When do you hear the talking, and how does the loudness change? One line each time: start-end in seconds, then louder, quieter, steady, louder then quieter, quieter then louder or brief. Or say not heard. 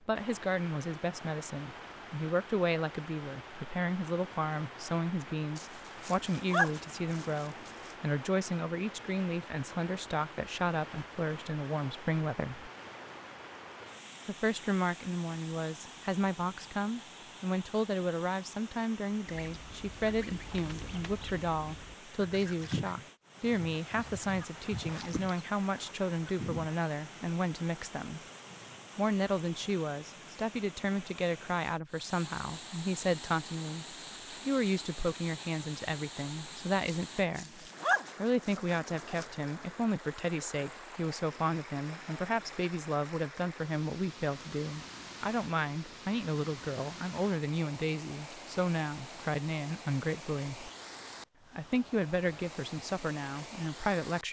0.1-12.7 steady
14.2-28.2 steady
28.9-50.7 steady
51.5-54.2 brief.